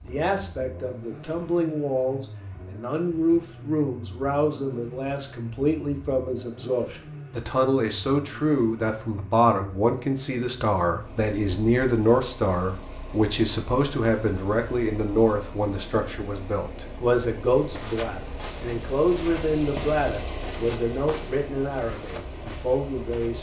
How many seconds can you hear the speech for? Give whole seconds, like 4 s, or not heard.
23 s.